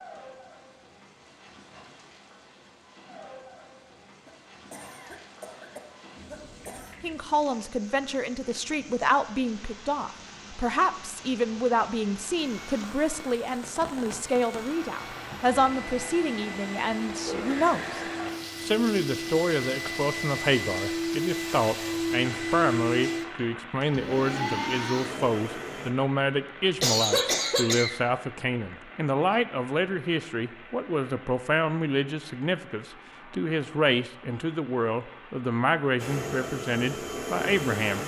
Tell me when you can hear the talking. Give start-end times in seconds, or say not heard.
7.0-18.0, 18.6-38.0.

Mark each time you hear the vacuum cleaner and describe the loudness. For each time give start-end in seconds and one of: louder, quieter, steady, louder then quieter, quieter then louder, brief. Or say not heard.
12.3-25.9 louder
36.0-38.0 brief.